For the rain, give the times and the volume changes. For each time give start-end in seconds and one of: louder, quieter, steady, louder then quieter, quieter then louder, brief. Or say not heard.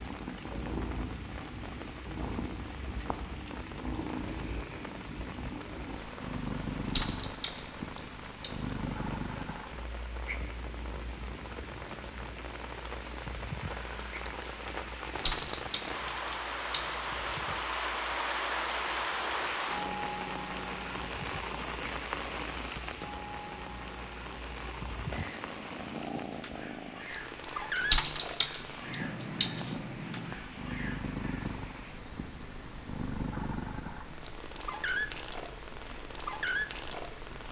0.0-37.4 louder then quieter.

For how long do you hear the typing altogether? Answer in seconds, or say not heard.
5 s.